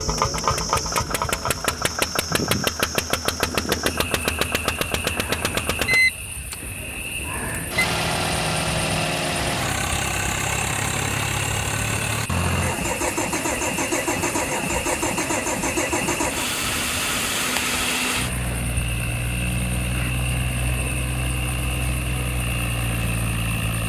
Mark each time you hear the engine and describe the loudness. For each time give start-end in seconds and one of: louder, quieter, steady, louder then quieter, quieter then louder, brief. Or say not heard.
0.0-23.8 steady.